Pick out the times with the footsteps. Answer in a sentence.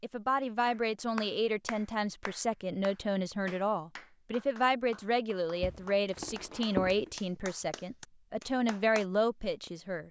You can hear the footsteps from 5.6 to 7.4 s.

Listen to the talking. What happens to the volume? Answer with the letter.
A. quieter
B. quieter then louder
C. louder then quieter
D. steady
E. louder
D.